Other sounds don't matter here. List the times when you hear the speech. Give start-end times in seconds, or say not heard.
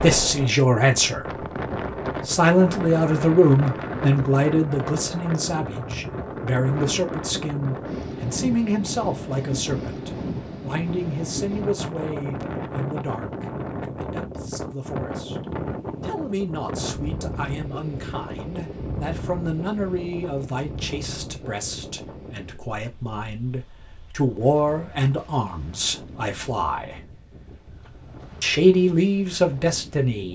0.0-1.4, 2.2-15.4, 16.0-27.1, 28.4-30.3.